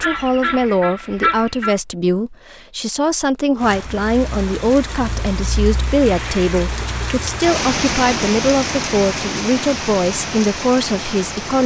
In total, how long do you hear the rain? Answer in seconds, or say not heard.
8 s.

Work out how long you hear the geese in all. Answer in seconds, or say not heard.
2 s.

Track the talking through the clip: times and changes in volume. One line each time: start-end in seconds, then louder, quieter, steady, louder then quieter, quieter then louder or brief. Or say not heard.
0.0-11.6 steady.